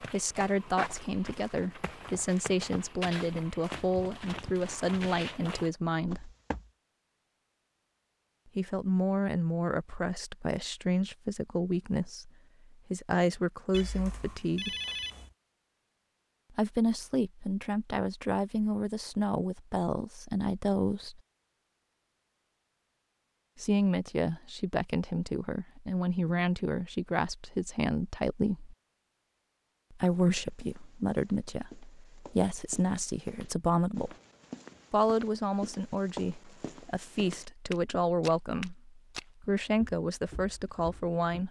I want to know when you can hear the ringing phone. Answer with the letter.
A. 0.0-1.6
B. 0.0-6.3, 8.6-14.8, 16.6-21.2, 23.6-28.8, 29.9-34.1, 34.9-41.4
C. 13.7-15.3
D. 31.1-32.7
C.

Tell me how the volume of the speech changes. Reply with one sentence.
The volume of the speech stays about the same.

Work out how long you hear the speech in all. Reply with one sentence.
The speech can be heard for 33 seconds in total.